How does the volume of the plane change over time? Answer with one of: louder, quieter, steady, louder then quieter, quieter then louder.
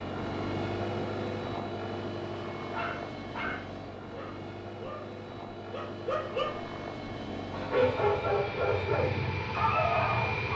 quieter then louder.